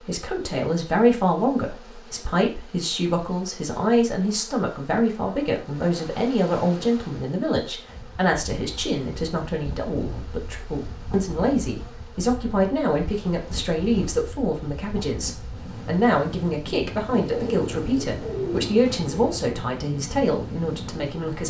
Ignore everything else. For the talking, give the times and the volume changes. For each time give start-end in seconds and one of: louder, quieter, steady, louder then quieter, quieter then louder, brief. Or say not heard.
0.1-21.4 steady.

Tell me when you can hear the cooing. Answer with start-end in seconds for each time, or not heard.
17.1-19.4.